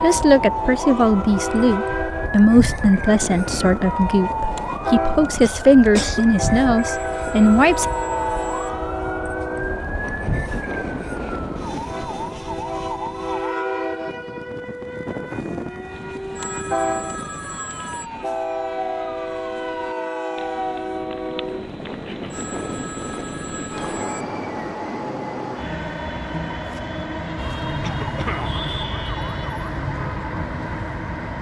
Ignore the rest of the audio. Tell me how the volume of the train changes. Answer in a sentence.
The loudness of the train stays about the same.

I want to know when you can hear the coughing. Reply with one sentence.
The coughing can be heard from 5.4 to 6.2 s and from 27.8 to 28.6 s.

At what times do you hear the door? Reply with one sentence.
The door can't be heard in this clip.